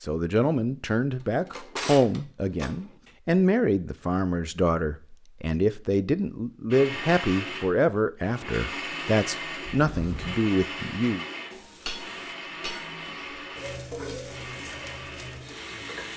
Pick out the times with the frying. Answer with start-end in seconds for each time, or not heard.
11.5-16.1.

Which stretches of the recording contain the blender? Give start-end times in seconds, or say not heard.
6.7-16.1.